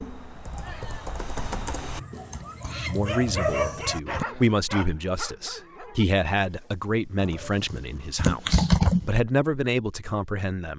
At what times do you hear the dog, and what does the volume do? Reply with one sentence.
The dog can be heard from 0.5 to 7.3 s, getting louder then quieter.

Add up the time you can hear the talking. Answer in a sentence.
You can hear the talking for 8 seconds altogether.